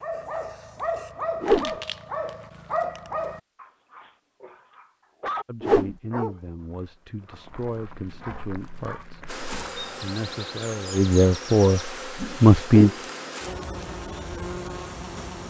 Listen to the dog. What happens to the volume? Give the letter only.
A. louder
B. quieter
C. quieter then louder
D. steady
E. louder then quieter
B.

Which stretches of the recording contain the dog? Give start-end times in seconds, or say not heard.
0.0-9.9.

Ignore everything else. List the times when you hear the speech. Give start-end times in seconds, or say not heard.
5.5-12.9.